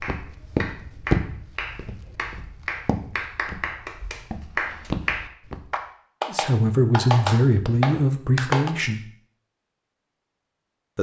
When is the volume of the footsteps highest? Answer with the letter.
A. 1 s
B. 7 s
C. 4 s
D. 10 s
A.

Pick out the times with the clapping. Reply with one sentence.
The clapping can be heard from 0.0 to 8.7 s.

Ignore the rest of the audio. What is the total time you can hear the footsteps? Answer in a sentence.
You can hear the footsteps for 6 seconds altogether.